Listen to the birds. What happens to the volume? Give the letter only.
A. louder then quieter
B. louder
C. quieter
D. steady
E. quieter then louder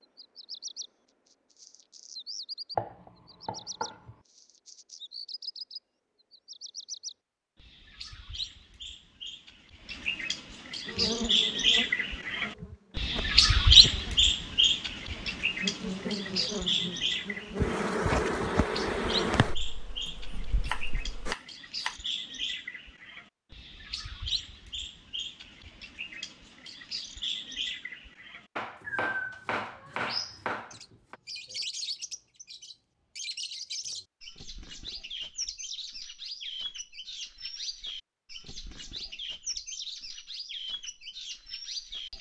A.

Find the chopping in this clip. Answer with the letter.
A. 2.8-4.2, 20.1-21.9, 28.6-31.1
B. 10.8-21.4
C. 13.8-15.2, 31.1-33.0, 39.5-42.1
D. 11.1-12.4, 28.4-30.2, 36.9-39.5
A.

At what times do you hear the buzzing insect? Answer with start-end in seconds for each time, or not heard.
10.8-21.4.